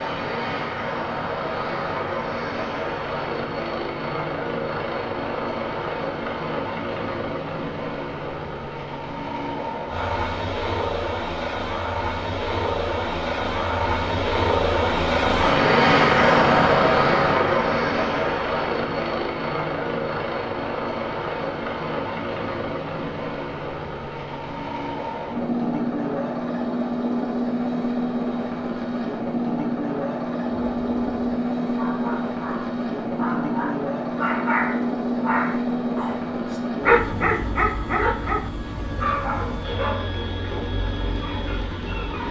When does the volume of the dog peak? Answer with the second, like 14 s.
37 s.